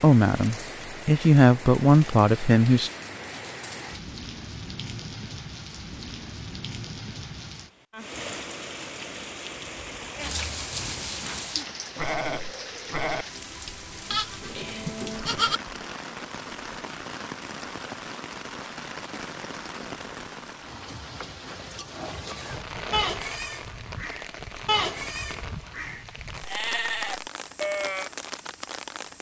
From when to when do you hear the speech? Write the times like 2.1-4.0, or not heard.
0.0-2.9.